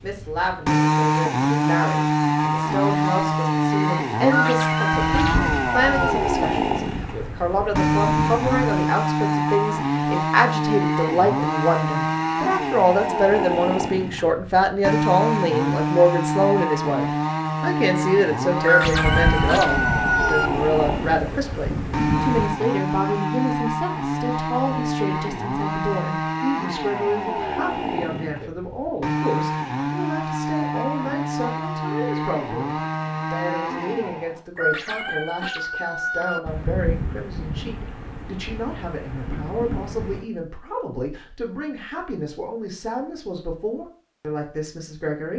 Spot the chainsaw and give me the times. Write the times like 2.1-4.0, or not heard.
0.0-34.4.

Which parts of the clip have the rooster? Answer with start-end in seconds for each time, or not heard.
4.2-6.2, 18.6-20.5, 34.5-36.4.